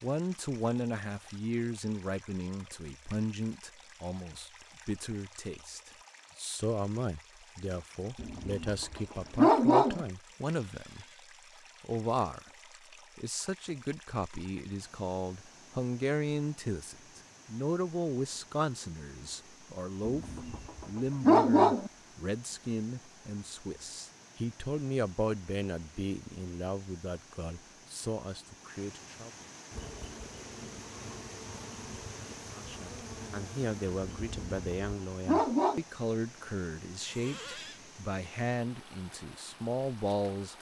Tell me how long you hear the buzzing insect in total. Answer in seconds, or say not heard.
5 s.